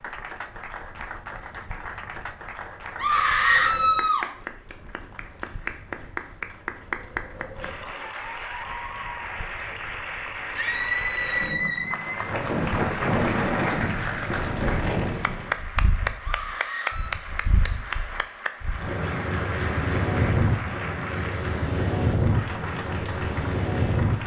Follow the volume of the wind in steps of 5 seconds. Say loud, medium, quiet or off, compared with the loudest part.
quiet, quiet, loud, medium, loud.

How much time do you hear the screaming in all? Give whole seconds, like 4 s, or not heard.
4 s.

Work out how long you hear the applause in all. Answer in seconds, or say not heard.
24 s.